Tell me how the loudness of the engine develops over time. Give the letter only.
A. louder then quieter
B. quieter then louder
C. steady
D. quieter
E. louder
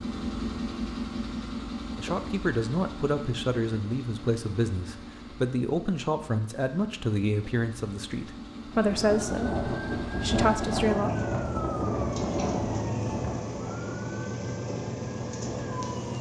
B.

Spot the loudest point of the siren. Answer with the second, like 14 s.
11 s.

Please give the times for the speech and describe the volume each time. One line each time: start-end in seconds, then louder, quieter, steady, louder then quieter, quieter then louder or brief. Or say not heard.
1.9-11.1 steady.